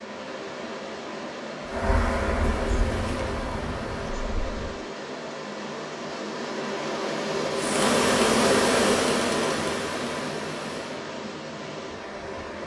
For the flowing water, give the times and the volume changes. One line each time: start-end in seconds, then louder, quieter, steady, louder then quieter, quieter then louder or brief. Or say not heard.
0.0-12.6 louder then quieter.